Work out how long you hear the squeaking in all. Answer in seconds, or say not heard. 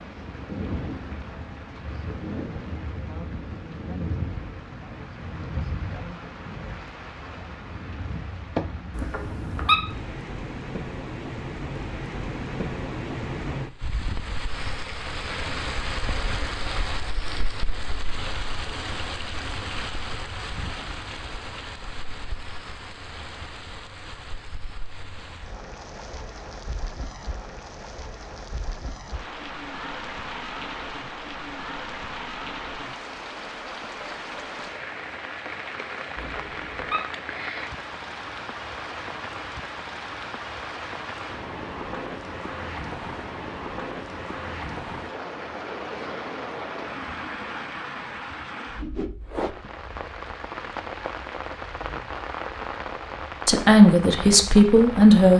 2 s.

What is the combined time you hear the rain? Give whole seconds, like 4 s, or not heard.
55 s.